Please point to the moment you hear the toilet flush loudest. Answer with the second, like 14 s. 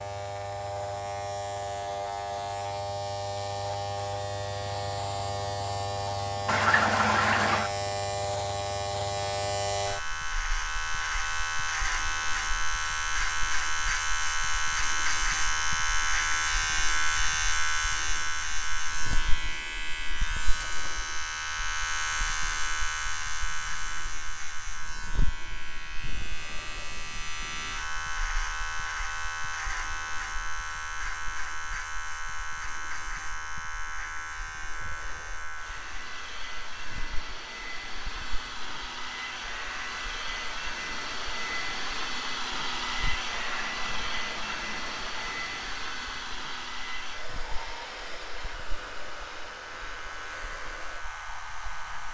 7 s.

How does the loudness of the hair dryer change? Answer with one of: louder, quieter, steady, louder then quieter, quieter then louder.
louder then quieter.